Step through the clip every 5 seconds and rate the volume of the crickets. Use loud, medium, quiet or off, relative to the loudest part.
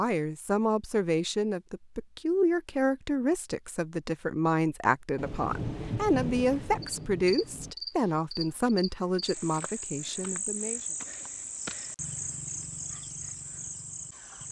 off, loud, loud.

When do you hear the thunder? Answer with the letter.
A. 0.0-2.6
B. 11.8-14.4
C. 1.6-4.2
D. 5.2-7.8
D.